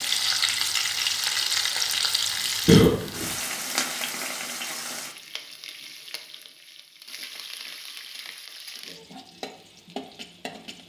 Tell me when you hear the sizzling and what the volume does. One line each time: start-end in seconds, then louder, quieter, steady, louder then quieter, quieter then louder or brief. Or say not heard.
0.0-10.8 quieter.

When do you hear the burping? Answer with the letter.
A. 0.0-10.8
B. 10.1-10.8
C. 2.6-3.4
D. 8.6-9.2
C.